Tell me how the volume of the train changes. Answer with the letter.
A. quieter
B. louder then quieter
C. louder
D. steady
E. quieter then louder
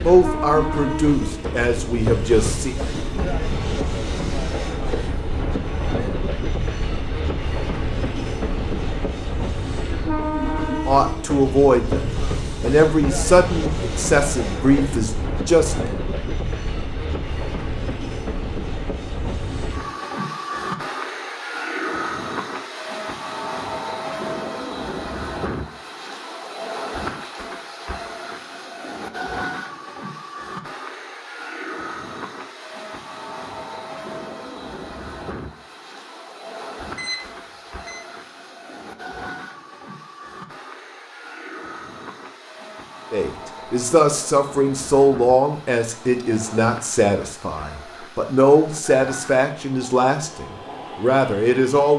A.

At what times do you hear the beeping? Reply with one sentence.
You can hear the beeping from 37.0 to 38.0 s.